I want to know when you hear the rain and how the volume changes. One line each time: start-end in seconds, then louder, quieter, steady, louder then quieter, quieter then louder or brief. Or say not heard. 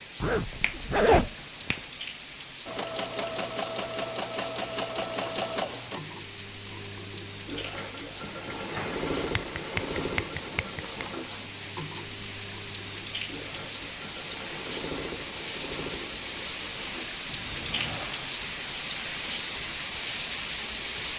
0.0-21.1 louder.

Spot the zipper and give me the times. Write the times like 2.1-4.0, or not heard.
0.2-1.3, 17.6-18.3.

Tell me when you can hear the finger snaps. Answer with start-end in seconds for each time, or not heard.
0.6-1.9, 8.4-11.1, 17.2-18.1.